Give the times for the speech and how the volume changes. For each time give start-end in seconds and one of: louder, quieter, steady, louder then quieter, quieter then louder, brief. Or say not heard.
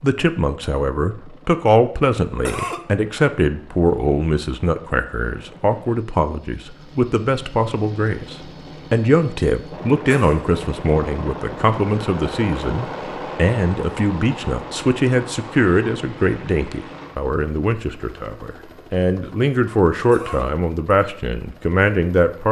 0.0-22.4 steady.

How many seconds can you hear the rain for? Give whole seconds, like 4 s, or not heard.
not heard.